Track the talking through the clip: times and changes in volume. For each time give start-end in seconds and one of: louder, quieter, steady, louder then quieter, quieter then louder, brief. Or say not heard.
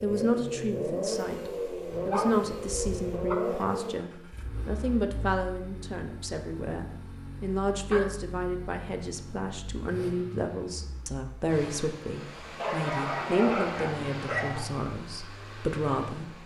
0.0-16.4 steady.